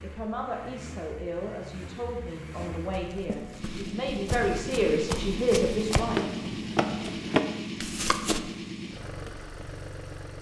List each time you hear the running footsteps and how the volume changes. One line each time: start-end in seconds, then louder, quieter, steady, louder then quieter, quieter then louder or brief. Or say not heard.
2.9-8.4 louder.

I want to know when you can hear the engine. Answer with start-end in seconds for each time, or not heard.
0.0-10.3.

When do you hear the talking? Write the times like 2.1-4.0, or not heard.
0.0-6.2.